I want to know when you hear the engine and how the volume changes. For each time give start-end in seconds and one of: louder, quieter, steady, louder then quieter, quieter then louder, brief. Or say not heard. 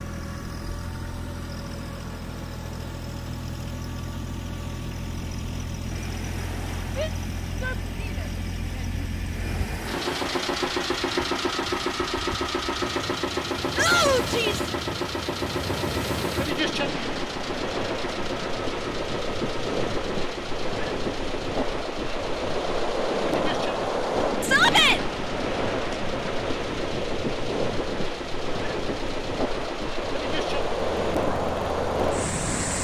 0.0-32.7 louder then quieter.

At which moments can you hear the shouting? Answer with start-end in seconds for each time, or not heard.
7.0-9.0, 13.8-14.7, 24.4-25.0.